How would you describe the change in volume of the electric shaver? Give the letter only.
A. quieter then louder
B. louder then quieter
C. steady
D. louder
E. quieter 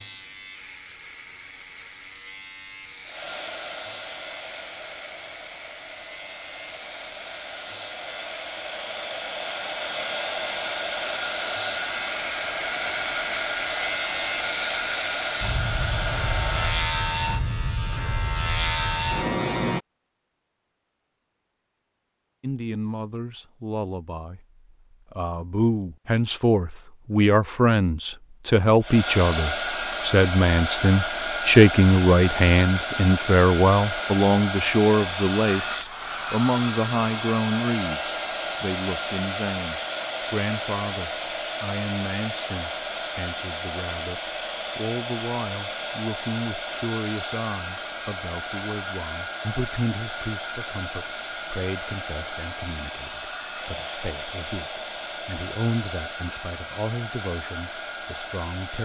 D.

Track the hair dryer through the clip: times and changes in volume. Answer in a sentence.
You can hear the hair dryer from 3.0 to 16.9 s, getting louder; and from 28.8 to 58.8 s, getting quieter.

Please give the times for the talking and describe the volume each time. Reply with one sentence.
The talking can be heard briefly from 22.4 to 24.4 s; and from 25.1 to 58.8 s, getting quieter.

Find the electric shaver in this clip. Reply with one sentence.
You can hear the electric shaver from 0.0 to 19.8 s.